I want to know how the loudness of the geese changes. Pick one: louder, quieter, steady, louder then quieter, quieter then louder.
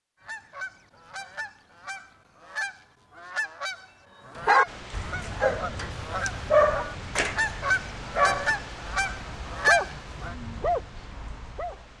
louder.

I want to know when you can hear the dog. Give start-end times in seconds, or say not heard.
4.3-11.8.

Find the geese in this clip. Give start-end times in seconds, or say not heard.
0.2-10.3.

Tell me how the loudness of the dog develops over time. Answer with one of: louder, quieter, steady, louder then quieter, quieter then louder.
louder then quieter.